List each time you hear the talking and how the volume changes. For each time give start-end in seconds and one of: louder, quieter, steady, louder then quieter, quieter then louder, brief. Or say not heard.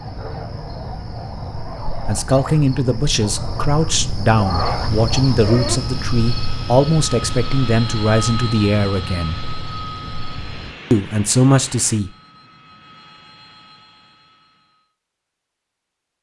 2.0-9.4 steady
10.9-12.1 brief.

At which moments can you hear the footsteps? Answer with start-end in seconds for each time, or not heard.
not heard.